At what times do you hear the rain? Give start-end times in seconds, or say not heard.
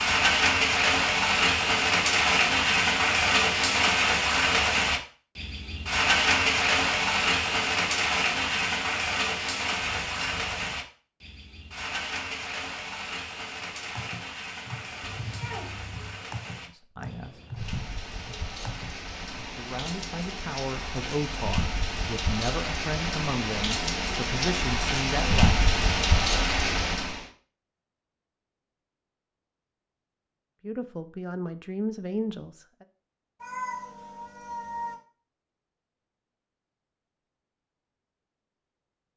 0.0-27.2.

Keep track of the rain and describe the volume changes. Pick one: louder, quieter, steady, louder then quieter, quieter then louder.
quieter then louder.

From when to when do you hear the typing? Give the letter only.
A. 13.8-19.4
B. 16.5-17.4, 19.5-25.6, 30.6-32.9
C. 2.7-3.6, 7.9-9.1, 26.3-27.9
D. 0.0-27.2
A.